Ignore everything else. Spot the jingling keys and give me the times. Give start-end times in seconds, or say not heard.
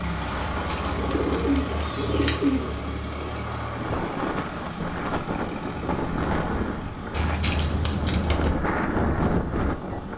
0.4-2.8, 7.1-8.6.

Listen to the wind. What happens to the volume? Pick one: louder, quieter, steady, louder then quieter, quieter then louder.
louder.